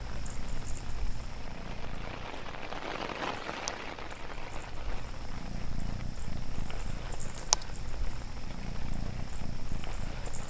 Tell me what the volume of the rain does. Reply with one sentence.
The loudness of the rain goes up, then down.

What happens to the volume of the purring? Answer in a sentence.
The volume of the purring goes up, then down.